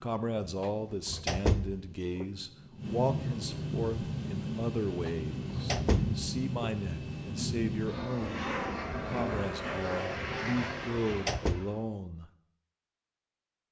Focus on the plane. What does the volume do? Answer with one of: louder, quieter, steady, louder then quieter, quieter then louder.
louder.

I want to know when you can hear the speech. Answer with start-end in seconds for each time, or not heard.
0.0-12.2.